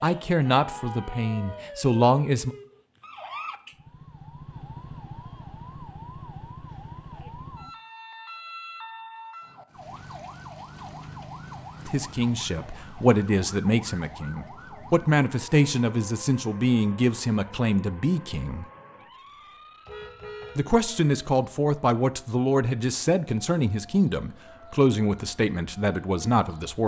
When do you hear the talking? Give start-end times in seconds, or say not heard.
0.0-2.5, 11.8-18.6, 20.6-26.8.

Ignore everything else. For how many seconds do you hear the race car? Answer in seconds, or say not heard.
not heard.